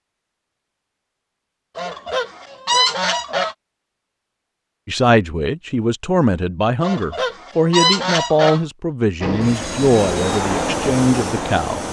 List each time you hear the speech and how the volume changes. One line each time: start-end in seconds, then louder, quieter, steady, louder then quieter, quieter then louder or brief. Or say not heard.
4.8-11.8 steady.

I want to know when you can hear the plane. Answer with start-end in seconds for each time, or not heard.
9.2-11.8.